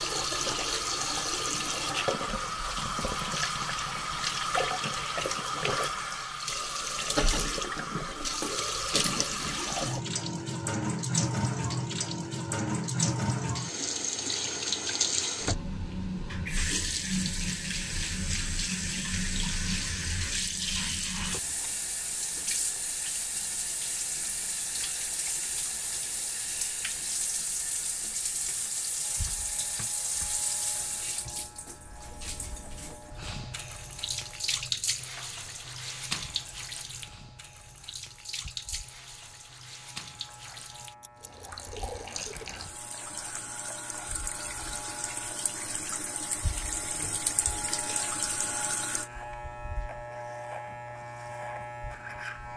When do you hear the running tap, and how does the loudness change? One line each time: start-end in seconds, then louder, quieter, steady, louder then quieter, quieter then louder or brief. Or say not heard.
0.0-49.1 quieter.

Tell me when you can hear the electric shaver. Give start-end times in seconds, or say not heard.
29.0-52.5.